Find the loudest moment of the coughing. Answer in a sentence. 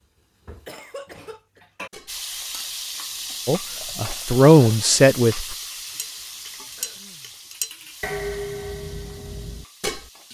The loudest moment of the coughing is at 1 second.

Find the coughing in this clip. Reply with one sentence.
The coughing can be heard from 0.7 to 1.6 s and from 6.8 to 7.4 s.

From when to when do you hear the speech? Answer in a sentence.
The speech can be heard from 3.5 to 5.5 s.